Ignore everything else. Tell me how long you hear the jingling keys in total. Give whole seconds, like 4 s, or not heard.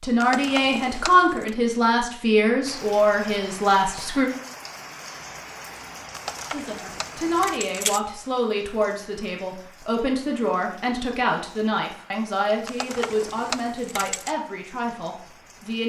5 s.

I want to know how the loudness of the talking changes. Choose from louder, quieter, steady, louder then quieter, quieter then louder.
quieter.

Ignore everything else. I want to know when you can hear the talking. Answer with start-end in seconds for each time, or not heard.
0.0-4.3, 6.5-15.8.